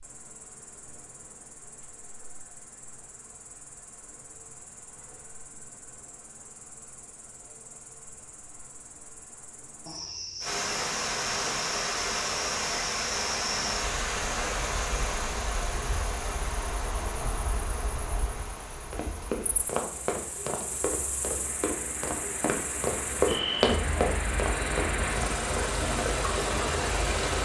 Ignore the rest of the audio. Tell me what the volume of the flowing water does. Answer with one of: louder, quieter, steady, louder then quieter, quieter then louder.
quieter then louder.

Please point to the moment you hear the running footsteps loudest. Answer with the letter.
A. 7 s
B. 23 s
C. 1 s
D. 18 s
B.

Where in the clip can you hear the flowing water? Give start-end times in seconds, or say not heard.
10.4-27.3.